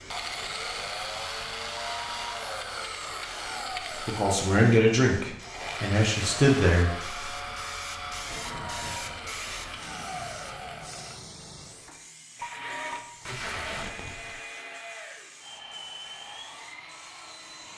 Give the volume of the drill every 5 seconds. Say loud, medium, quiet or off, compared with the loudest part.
loud, loud, medium, medium.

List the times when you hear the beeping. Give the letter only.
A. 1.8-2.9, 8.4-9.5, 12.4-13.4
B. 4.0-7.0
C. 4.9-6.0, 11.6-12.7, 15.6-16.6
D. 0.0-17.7
A.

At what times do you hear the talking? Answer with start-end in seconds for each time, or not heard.
4.0-7.0.